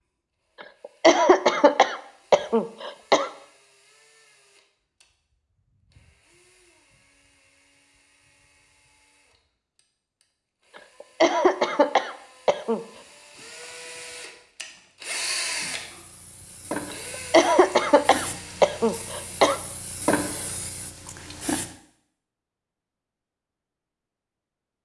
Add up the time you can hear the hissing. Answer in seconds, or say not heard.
6 s.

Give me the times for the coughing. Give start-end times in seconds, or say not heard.
1.0-3.3, 11.0-12.8, 17.1-19.6.